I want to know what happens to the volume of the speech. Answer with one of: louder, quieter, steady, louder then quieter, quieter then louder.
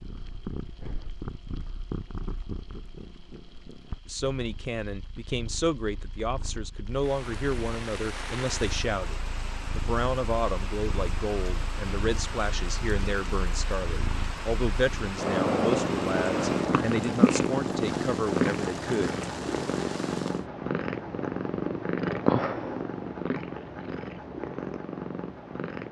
steady.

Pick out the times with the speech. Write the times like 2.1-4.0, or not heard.
4.0-19.1.